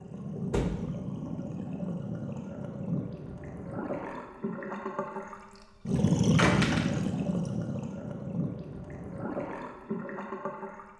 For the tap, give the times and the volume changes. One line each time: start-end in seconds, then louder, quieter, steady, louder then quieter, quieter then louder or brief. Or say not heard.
0.0-10.9 louder then quieter.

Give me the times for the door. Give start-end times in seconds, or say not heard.
0.5-0.9, 6.3-7.2.